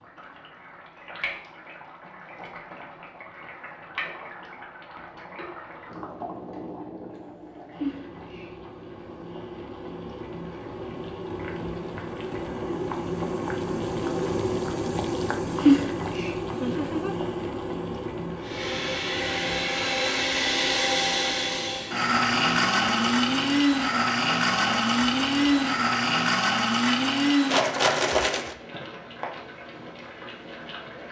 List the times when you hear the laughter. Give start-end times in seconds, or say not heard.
16.5-17.1.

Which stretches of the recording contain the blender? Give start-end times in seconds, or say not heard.
18.4-28.6.